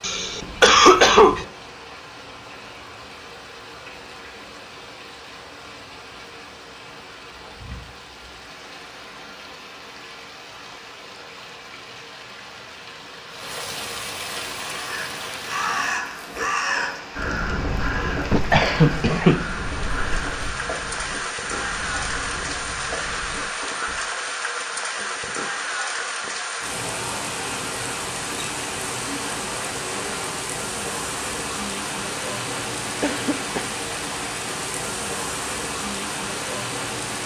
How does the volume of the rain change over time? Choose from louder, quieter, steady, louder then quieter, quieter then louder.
louder.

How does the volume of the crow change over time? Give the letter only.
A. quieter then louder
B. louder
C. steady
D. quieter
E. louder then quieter
D.